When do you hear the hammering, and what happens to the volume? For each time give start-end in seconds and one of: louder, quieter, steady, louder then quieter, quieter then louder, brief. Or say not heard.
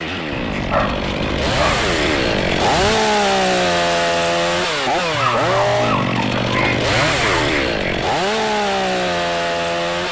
not heard.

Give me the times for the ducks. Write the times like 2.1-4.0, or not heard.
0.3-3.0, 6.5-8.1.